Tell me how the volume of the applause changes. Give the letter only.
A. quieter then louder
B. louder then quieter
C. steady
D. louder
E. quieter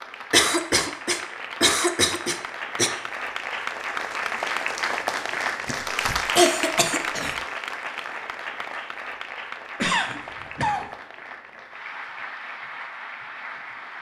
B.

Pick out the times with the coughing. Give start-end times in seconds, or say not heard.
0.3-2.9, 5.7-7.3, 9.8-10.9.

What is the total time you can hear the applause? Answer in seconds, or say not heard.
14 s.